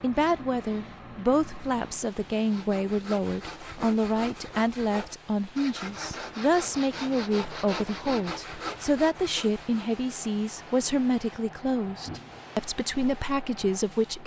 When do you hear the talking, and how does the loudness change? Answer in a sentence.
You can hear the talking from 0.0 to 14.2 s, at a steady volume.